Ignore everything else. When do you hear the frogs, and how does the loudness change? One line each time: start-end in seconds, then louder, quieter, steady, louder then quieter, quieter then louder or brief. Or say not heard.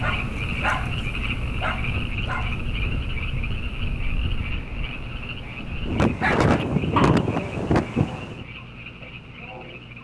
0.0-9.9 quieter.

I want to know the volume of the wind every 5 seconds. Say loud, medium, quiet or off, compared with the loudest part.
quiet, loud.